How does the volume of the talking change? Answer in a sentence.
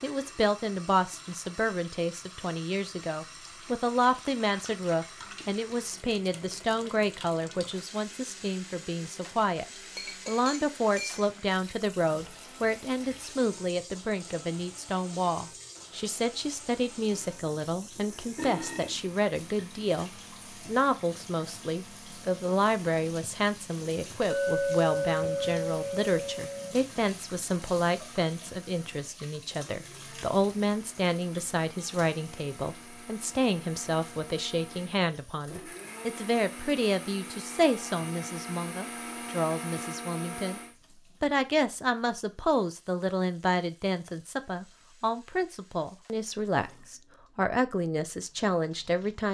The loudness of the talking stays about the same.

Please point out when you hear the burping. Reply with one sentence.
The burping can be heard from 18.4 to 19.0 s.